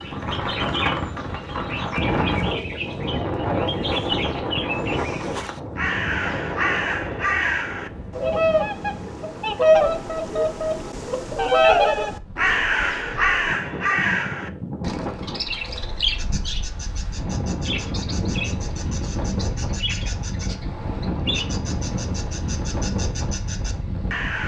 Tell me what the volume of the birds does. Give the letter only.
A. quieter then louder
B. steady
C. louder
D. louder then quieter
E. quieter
D.